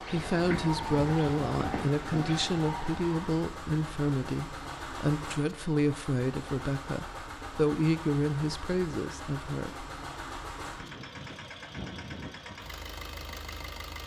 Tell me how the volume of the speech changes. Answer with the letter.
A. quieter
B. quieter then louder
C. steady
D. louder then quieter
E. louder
C.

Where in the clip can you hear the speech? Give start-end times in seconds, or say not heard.
0.0-9.8.